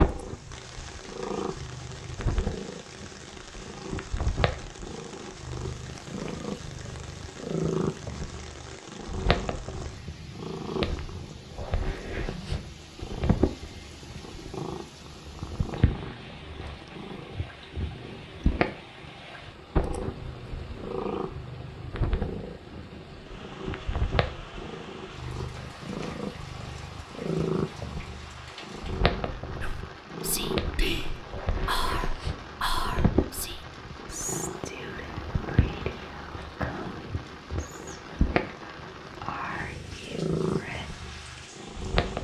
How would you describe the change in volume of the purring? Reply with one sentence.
The loudness of the purring stays about the same.